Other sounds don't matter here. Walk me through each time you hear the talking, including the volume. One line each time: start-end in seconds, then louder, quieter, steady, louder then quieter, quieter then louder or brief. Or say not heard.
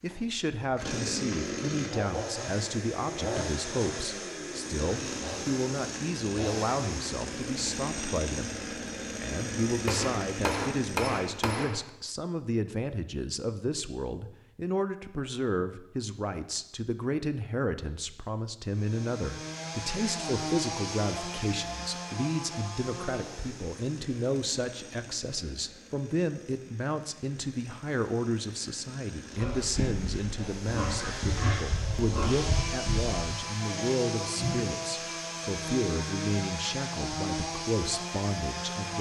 0.0-38.9 steady.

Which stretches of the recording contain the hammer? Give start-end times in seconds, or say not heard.
9.8-11.8.